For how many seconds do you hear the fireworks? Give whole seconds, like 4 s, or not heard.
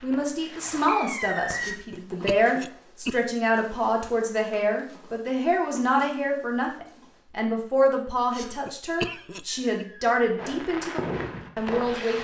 4 s.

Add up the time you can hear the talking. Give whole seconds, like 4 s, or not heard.
12 s.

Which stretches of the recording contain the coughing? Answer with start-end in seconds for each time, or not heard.
1.6-3.2, 8.3-9.8.